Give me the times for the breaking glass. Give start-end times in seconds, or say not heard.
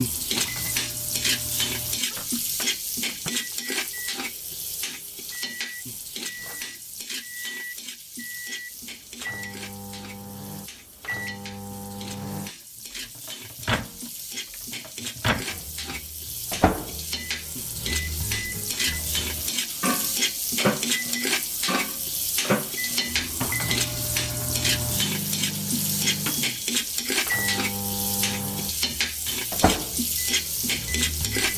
not heard.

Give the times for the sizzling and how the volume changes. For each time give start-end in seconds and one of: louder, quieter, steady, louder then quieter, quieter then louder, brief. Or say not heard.
0.0-31.5 quieter then louder.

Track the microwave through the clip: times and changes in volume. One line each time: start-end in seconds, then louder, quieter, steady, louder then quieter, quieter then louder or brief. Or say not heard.
0.0-31.5 louder.